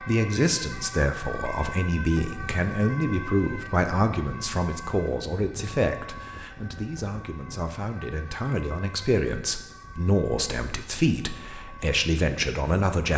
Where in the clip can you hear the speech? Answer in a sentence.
The speech can be heard from 0.0 to 13.1 s.